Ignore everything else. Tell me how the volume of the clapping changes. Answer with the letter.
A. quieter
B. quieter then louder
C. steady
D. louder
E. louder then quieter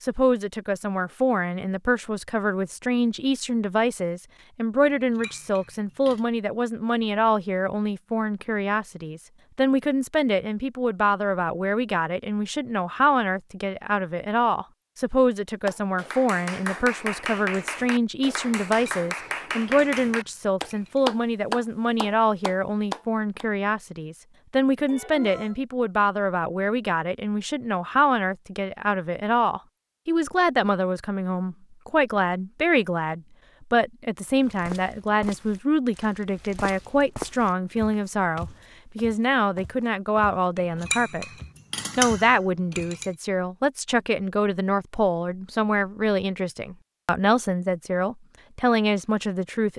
E.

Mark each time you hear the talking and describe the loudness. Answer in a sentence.
You can hear the talking from 0.0 to 41.2 s, at a steady volume; and from 42.0 to 49.7 s, at a steady volume.